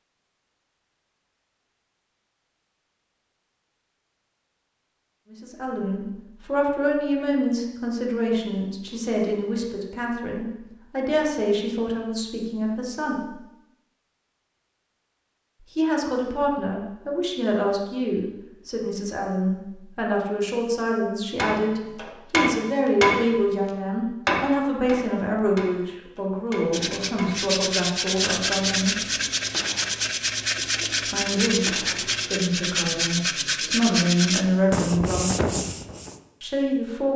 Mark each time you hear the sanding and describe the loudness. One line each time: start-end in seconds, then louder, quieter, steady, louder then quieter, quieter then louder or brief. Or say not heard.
26.7-36.2 steady.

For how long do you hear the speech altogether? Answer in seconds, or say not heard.
26 s.